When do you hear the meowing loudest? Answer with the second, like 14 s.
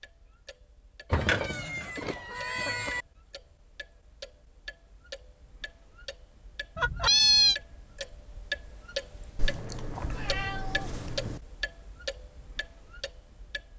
7 s.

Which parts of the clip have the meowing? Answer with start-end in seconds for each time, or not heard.
1.1-3.0, 6.8-7.5, 9.3-11.4.